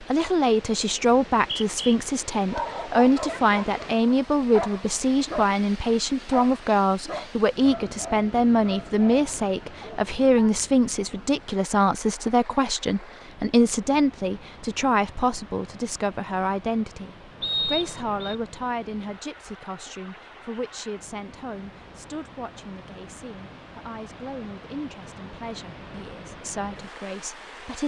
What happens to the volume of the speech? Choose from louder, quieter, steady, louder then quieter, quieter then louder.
quieter.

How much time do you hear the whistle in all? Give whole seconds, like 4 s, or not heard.
2 s.